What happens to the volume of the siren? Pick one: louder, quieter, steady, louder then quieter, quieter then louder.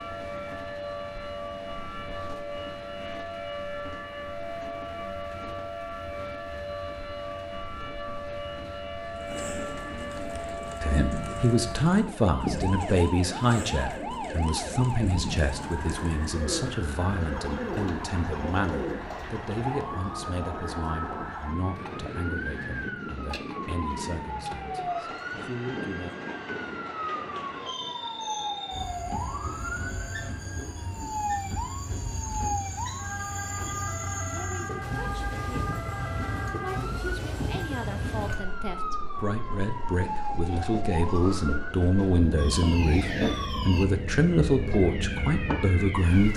steady.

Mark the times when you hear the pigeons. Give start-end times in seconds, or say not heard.
9.1-19.4.